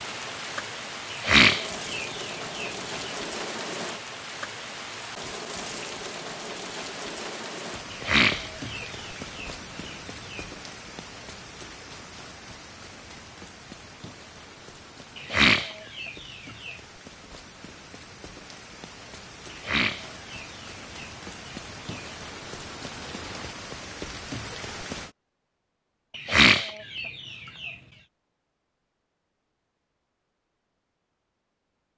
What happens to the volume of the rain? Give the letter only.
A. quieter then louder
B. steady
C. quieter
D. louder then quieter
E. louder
A.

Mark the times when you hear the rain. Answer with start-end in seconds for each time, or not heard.
0.0-25.1.